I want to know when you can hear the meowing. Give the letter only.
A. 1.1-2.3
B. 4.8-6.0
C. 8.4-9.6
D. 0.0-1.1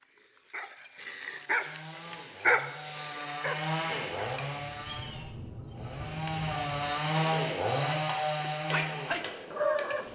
B.